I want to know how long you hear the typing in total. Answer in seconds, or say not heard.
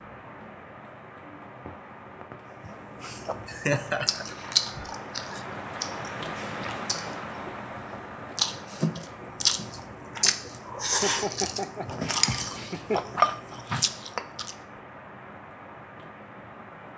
not heard.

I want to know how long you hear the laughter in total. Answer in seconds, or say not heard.
4 s.